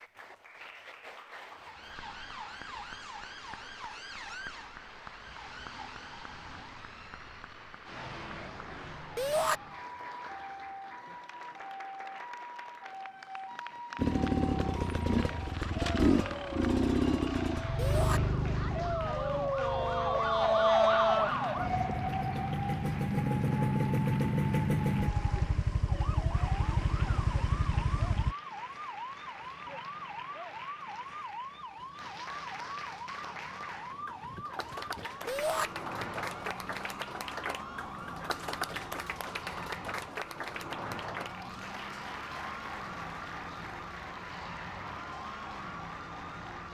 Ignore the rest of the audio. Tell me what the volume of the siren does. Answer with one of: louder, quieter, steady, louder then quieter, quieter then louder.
louder then quieter.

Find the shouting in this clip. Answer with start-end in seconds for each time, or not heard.
9.2-9.6, 17.8-18.2, 35.2-35.7.